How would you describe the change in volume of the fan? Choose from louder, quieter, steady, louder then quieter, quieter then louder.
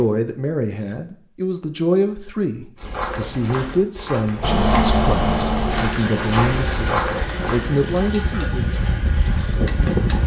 quieter then louder.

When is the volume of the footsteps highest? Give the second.
7 s.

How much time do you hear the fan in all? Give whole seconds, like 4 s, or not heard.
6 s.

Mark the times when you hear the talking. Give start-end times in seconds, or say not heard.
0.0-8.7.